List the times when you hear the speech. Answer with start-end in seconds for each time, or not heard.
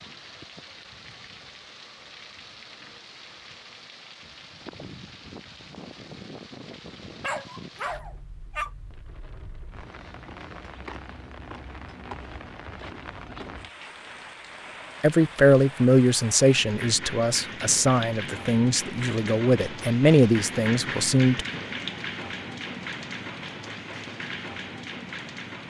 15.0-21.4.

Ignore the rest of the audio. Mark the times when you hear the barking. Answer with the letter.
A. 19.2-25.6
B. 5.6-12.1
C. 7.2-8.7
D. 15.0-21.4
C.